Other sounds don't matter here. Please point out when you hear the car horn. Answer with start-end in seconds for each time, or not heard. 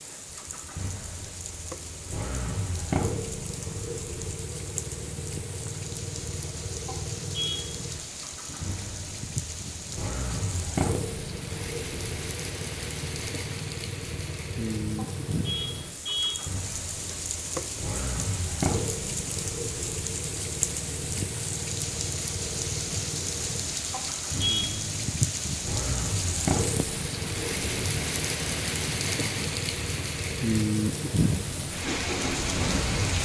6.8-7.7, 14.9-16.4, 23.9-24.8.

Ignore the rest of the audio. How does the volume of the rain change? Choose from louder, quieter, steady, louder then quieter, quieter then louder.
louder.